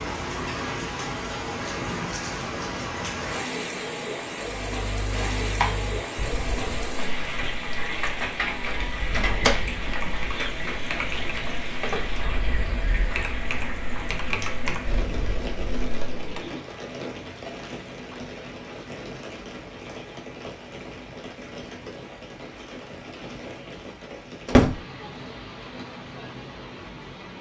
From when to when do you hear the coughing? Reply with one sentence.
The coughing can't be heard in this clip.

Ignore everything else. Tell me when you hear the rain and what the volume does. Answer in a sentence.
You can hear the rain from 0.0 to 27.3 s, getting quieter.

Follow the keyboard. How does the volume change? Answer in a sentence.
The loudness of the keyboard goes down, then up.